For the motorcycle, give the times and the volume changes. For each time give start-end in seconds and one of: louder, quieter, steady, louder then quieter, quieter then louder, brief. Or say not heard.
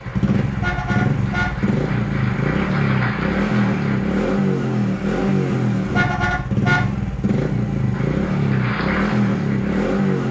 0.0-10.2 steady.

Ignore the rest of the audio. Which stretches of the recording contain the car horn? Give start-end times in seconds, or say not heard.
0.5-1.5, 5.8-6.8.